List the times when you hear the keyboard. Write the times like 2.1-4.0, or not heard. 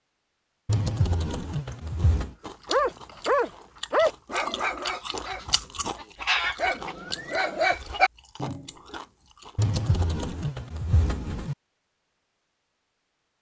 0.7-2.4, 9.6-11.6.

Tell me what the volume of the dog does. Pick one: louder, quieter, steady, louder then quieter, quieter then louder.
quieter then louder.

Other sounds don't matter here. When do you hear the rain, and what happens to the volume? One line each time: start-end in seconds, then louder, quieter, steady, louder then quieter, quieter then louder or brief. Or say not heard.
not heard.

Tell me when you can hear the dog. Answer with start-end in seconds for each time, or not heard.
2.6-9.0.